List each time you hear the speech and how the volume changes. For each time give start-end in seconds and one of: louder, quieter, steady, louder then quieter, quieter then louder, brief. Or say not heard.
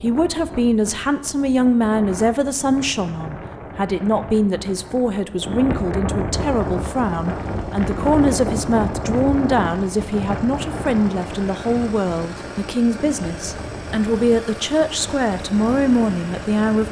0.0-16.8 steady.